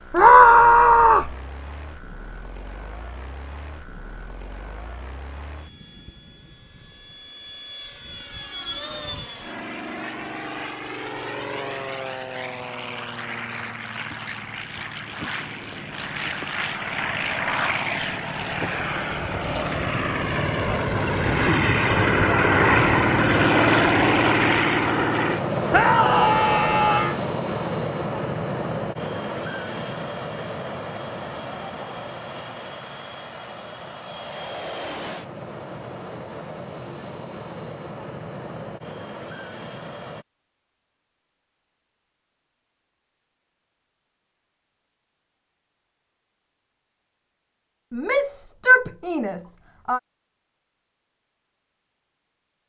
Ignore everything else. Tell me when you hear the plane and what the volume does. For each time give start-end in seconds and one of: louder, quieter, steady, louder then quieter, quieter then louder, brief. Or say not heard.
0.0-40.2 louder then quieter.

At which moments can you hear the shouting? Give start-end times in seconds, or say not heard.
0.1-1.3, 25.7-27.1, 47.9-50.0.